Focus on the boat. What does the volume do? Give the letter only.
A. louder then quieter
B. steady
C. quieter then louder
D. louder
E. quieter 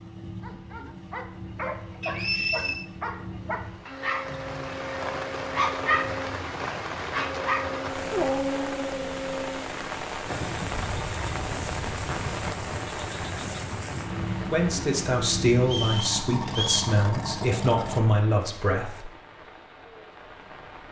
D.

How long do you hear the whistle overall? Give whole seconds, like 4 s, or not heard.
2 s.